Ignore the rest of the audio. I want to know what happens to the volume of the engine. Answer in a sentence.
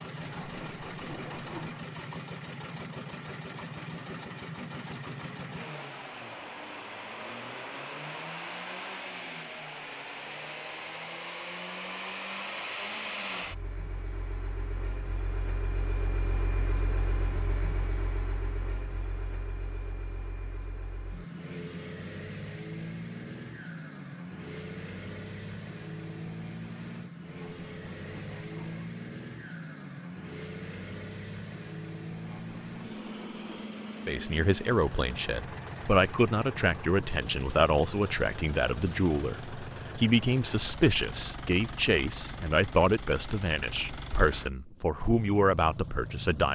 The loudness of the engine stays about the same.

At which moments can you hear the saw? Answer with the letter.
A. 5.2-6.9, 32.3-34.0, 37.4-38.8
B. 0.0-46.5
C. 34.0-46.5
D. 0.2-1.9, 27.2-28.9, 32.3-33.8
D.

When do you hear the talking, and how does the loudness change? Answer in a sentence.
The talking can be heard from 34.0 to 46.5 s, at a steady volume.